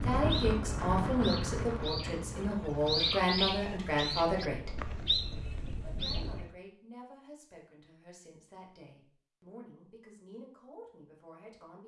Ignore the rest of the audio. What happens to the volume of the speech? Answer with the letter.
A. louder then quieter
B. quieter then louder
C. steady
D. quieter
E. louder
D.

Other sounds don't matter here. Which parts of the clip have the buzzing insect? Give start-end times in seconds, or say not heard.
not heard.